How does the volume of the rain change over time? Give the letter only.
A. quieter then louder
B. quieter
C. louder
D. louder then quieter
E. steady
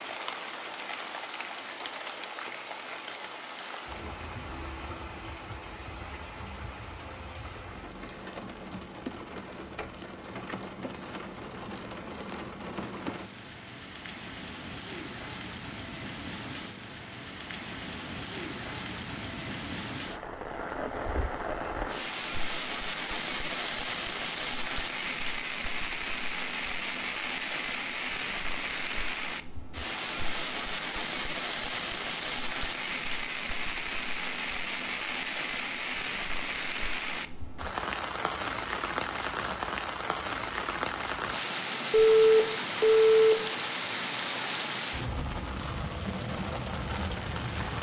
C.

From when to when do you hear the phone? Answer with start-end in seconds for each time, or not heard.
41.9-43.4.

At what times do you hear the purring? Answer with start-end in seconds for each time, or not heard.
not heard.